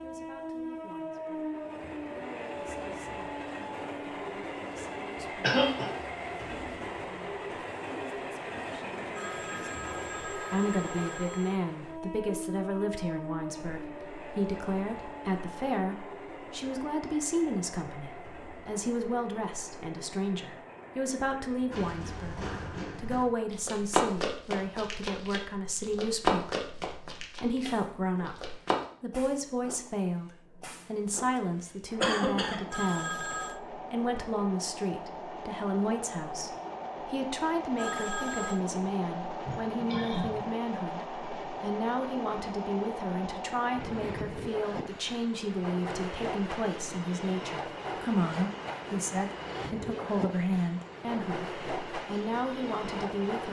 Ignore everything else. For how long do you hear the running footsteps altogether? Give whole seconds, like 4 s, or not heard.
7 s.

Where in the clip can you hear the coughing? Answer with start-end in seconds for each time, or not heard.
5.4-6.0, 32.0-32.8, 39.5-40.5.